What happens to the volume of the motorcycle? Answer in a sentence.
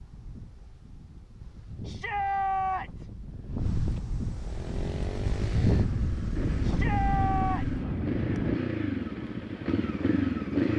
The volume of the motorcycle goes up.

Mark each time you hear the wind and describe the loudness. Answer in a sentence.
You can hear the wind from 0.0 to 8.6 s, getting louder.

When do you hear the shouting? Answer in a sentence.
The shouting can be heard from 1.9 to 3.1 s and from 6.6 to 7.7 s.